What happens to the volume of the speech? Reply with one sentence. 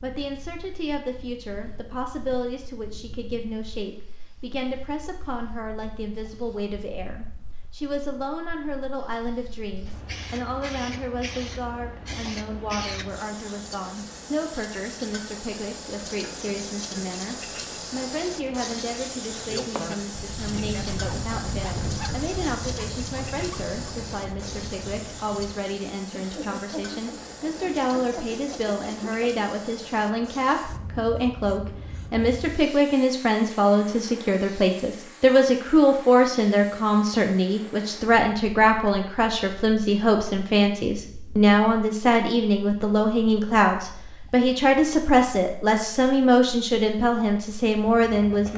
The volume of the speech goes up.